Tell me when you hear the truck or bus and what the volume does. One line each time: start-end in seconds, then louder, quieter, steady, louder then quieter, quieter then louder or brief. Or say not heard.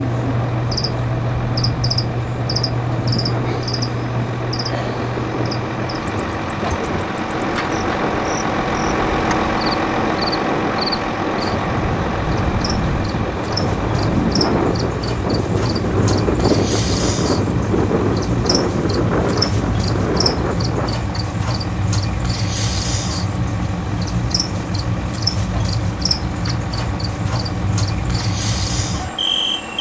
0.0-29.7 louder then quieter.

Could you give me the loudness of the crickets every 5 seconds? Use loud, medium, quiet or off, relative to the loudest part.
loud, medium, medium, loud, loud, loud.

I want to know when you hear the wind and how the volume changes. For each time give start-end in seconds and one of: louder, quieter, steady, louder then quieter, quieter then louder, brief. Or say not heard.
0.0-20.9 louder.